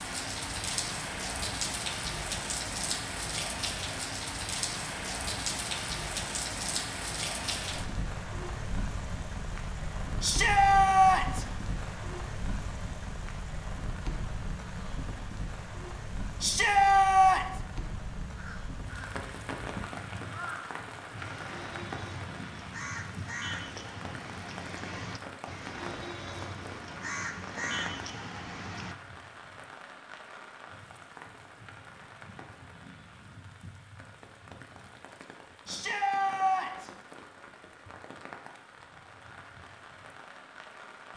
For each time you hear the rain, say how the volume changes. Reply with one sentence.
You can hear the rain from 0.0 to 41.1 s, getting quieter.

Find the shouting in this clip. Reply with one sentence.
The shouting can be heard from 10.2 to 11.4 s, from 16.4 to 17.4 s and from 35.6 to 36.9 s.